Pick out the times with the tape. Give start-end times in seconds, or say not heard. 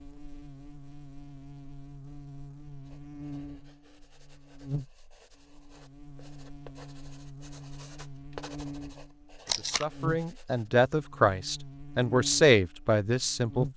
9.4-9.8.